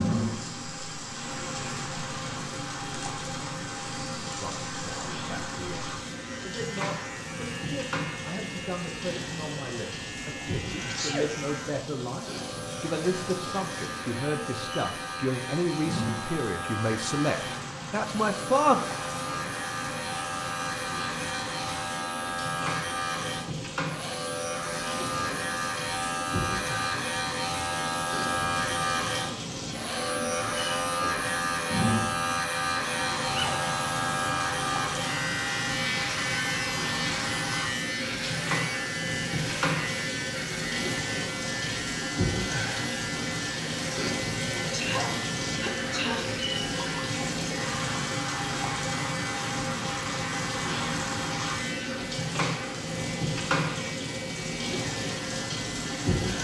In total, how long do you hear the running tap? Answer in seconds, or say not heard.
56 s.